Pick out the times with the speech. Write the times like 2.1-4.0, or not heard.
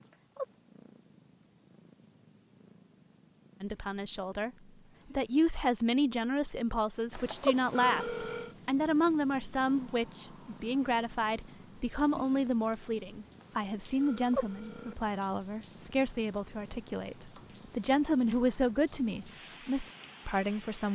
3.6-4.5, 5.2-20.9.